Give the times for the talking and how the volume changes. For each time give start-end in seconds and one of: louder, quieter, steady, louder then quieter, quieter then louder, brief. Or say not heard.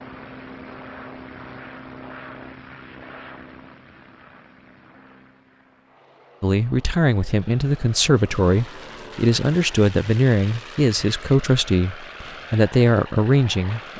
6.4-13.9 steady.